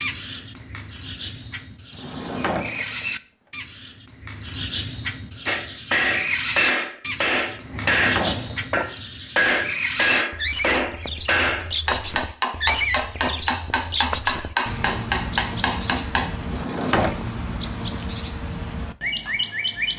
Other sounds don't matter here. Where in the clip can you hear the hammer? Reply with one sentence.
The hammer can be heard from 5.5 to 16.4 s.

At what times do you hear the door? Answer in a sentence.
The door can be heard from 1.9 to 3.1 s, from 7.6 to 8.8 s and from 16.4 to 17.1 s.